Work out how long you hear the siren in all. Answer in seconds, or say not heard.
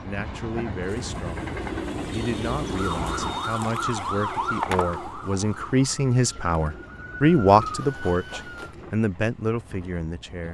6 s.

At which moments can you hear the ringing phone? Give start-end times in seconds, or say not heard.
4.5-5.0.